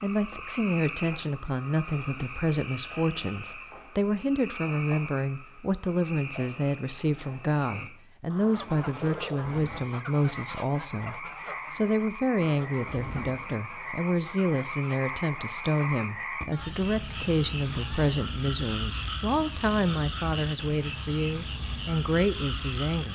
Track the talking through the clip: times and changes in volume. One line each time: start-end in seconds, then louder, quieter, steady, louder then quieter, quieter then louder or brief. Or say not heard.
0.0-23.1 steady.